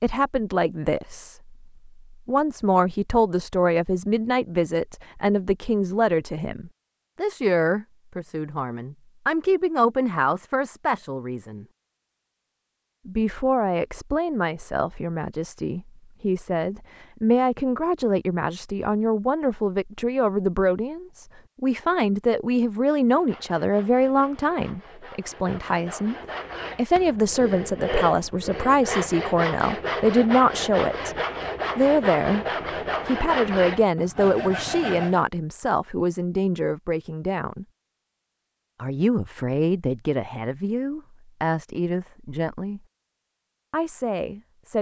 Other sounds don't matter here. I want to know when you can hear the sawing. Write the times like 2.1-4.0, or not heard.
23.1-35.2.